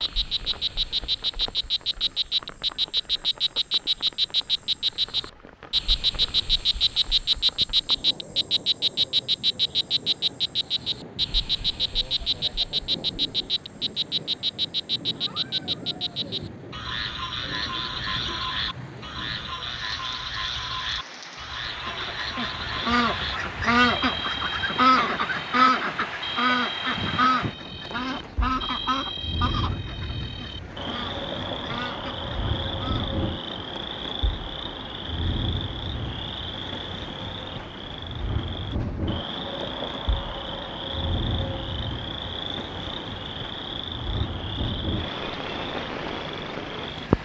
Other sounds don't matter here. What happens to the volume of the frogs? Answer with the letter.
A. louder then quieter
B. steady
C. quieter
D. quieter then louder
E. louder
C.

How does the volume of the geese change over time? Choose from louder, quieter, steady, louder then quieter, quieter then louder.
quieter.